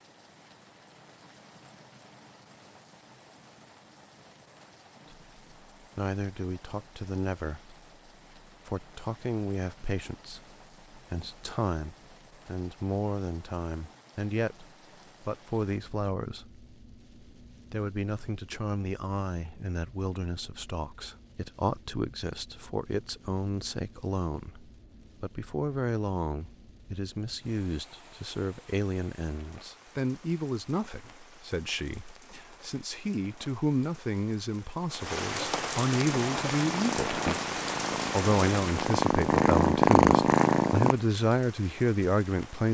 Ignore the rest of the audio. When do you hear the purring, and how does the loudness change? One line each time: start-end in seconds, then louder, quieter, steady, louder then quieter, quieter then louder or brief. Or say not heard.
36.1-41.0 louder.